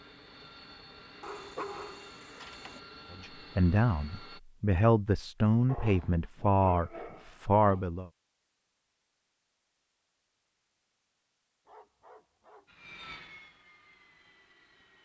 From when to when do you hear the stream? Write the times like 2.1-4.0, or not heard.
not heard.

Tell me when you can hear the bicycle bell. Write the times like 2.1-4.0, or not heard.
not heard.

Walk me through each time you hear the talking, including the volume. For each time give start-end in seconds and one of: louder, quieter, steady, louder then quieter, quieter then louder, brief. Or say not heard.
3.1-8.1 steady.